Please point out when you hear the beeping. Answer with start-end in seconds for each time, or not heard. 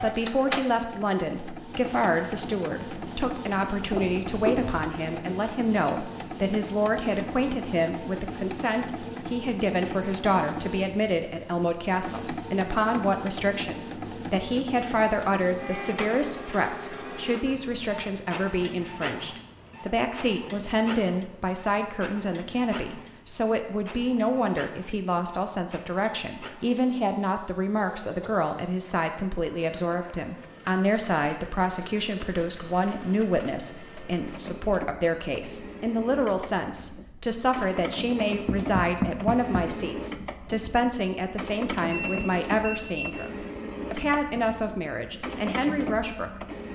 41.9-43.0.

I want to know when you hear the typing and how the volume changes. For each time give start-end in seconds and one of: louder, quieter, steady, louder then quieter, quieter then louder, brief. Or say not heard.
not heard.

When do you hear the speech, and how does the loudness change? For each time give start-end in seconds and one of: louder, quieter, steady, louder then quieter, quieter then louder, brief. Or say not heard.
0.0-46.7 steady.